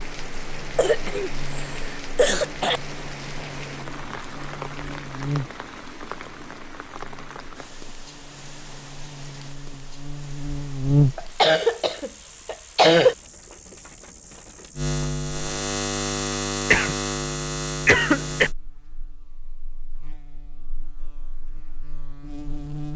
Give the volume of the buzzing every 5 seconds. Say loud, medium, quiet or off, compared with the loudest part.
quiet, medium, loud, loud, quiet.